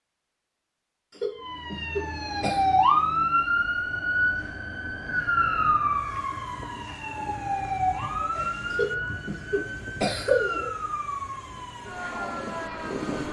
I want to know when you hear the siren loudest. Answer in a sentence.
The volume of the siren peaks at 3 seconds.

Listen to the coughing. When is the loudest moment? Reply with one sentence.
The volume of the coughing peaks at 10 seconds.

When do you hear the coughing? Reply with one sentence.
The coughing can be heard from 1.1 to 2.6 s and from 8.7 to 10.7 s.